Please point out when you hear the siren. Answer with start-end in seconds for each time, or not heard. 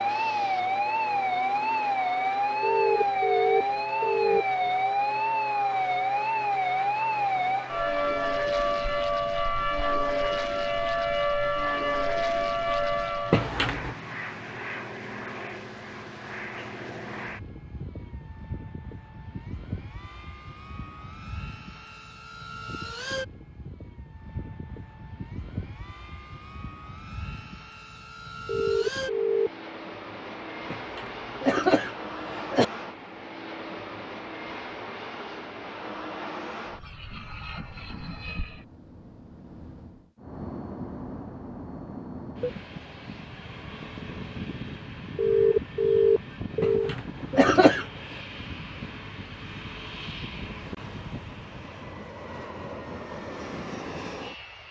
0.0-13.5.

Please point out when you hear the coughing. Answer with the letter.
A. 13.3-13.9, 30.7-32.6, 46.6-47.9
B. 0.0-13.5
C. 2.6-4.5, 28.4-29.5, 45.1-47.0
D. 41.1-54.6
A.